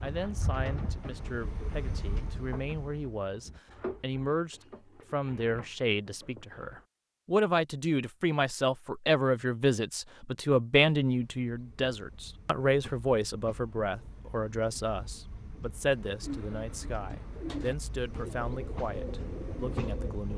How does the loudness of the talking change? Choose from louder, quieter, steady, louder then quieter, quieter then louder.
louder then quieter.